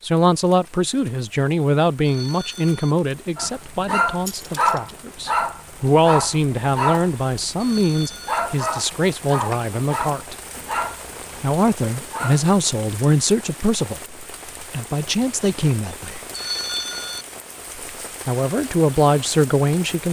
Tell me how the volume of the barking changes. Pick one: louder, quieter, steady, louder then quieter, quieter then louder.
quieter.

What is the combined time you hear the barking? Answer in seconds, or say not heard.
9 s.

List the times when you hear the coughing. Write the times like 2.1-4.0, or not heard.
not heard.